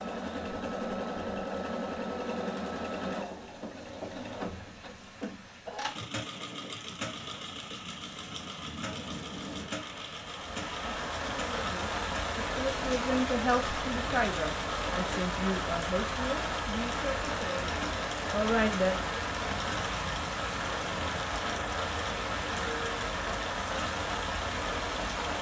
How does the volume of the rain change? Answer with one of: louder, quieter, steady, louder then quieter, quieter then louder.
louder.